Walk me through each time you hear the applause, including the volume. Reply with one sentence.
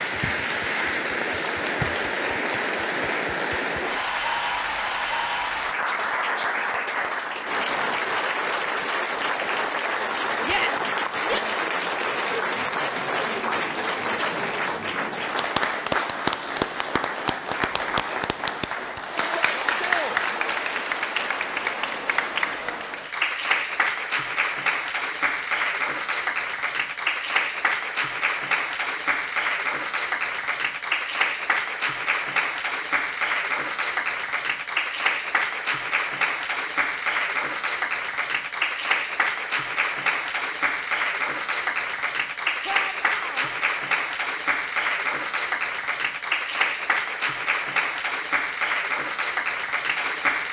You can hear the applause from 0.0 to 50.4 s, at a steady volume.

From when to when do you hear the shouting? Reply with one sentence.
You can hear the shouting from 10.4 to 11.4 s, from 19.2 to 20.2 s and from 42.6 to 43.5 s.